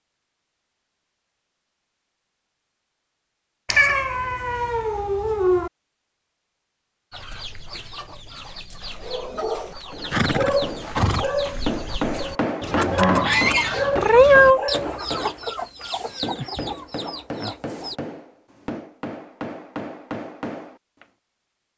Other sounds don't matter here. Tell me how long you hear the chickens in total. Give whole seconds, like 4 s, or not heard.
11 s.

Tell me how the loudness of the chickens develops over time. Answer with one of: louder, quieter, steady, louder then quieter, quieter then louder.
louder then quieter.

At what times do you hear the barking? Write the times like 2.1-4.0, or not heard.
8.9-14.9.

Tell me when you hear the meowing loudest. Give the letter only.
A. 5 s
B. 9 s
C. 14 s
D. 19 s
C.